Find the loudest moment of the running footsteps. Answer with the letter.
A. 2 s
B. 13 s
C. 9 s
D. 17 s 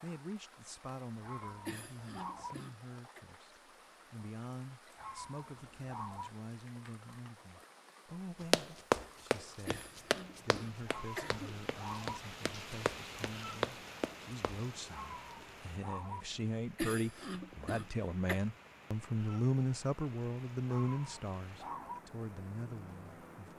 C.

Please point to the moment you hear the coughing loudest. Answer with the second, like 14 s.
17 s.